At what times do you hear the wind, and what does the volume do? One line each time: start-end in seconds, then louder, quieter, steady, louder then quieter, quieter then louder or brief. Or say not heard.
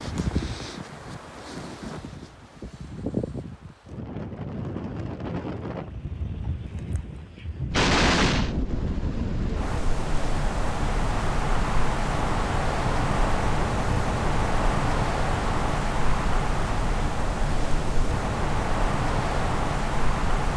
0.0-20.5 louder.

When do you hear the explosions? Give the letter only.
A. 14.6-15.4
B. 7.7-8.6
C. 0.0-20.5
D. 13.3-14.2
B.